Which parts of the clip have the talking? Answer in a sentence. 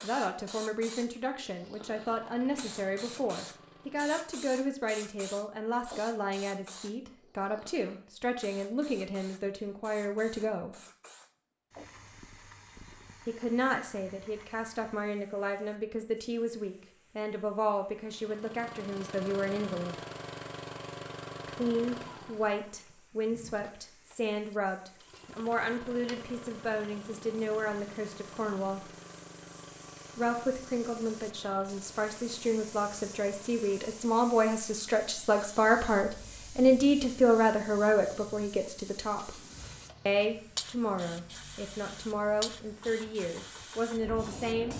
The talking can be heard from 0.0 to 10.8 s, from 13.2 to 20.0 s, from 21.4 to 28.9 s, from 30.1 to 39.4 s and from 40.0 to 44.7 s.